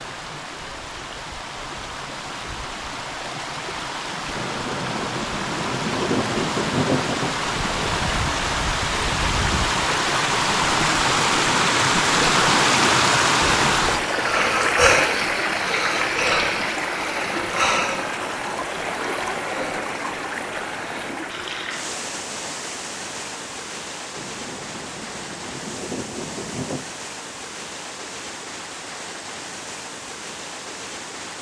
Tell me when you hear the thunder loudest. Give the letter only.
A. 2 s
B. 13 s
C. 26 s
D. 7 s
D.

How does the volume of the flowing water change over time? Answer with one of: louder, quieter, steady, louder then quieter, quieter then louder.
louder then quieter.